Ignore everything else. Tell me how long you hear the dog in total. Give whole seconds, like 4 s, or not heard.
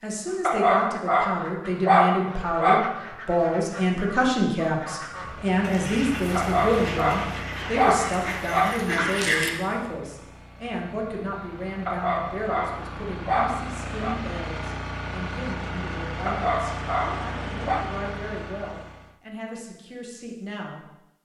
9 s.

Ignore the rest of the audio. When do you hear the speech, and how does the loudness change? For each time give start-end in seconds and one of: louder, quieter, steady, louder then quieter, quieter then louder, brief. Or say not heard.
0.0-21.2 quieter.